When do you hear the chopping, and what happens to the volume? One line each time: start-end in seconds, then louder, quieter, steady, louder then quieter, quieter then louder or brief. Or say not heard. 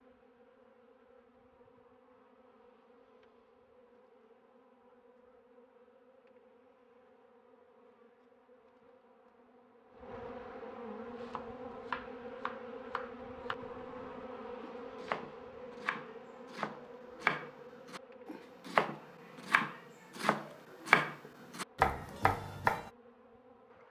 11.2-22.9 louder.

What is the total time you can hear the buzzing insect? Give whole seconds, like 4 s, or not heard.
24 s.